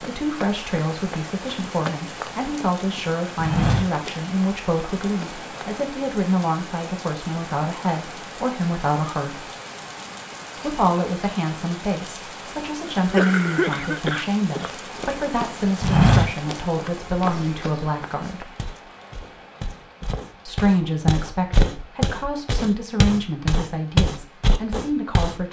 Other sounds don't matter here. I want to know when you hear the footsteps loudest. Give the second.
16 s.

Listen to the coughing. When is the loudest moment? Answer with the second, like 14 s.
13 s.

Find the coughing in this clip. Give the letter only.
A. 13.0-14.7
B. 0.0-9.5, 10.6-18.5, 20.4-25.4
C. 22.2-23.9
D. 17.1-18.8
A.